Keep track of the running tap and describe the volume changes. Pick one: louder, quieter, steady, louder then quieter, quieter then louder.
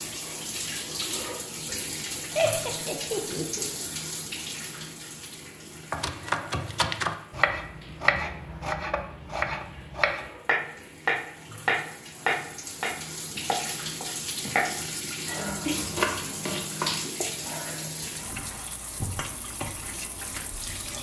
quieter then louder.